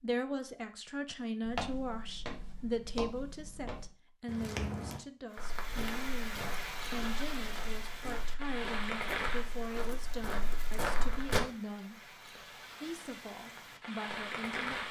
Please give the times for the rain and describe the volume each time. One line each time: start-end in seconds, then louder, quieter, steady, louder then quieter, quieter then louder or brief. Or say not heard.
5.3-14.8 quieter then louder.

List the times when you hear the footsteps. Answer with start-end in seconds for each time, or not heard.
1.4-11.4.